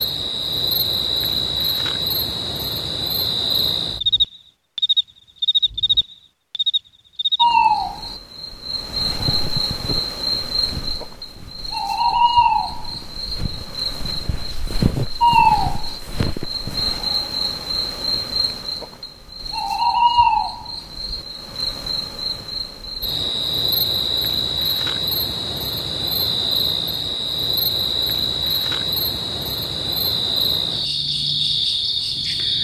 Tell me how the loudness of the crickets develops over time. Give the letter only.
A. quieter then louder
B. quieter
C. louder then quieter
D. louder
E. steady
E.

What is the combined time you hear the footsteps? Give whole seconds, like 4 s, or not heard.
8 s.